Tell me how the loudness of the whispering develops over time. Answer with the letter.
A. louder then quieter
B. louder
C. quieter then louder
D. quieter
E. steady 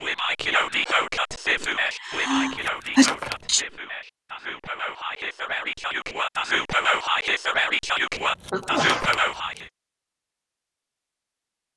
C.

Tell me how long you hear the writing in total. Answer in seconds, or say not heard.
not heard.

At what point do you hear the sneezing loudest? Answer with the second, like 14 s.
3 s.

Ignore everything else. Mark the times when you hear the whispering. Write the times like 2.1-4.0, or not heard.
0.0-9.7.